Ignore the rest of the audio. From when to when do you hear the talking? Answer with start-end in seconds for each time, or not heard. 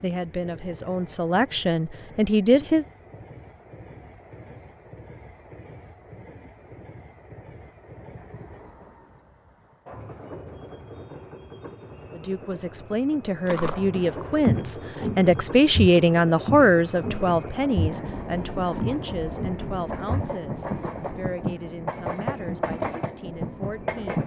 0.0-2.9, 12.1-24.2.